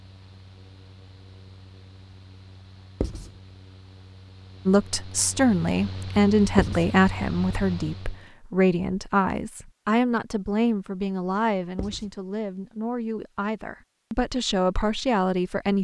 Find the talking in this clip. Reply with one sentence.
The talking can be heard from 4.7 to 15.7 s.